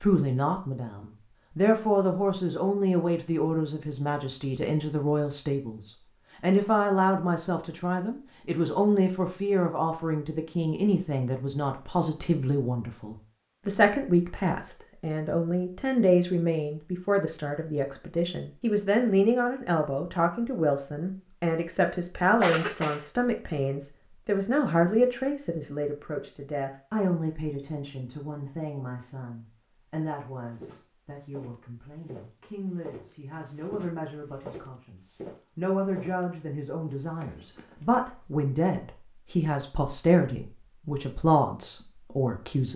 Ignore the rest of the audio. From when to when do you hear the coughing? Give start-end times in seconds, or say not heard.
22.4-23.1.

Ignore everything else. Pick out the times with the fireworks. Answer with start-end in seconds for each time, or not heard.
not heard.